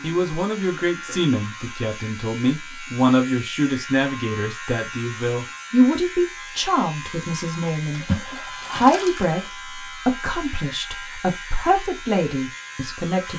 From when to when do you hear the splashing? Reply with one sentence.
You can hear the splashing from 7.9 to 9.4 s.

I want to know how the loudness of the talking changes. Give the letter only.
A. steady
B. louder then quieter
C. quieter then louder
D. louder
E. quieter
A.